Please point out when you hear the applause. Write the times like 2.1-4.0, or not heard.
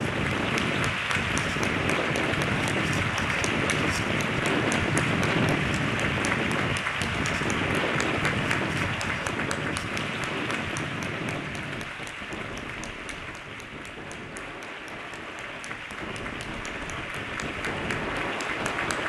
0.0-19.0.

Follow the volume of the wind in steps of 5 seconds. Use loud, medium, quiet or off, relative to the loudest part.
loud, loud, medium, medium.